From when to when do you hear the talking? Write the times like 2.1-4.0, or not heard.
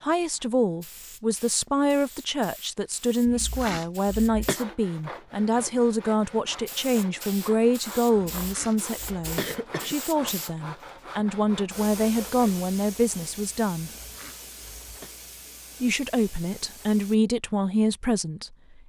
0.0-13.9, 15.8-18.8.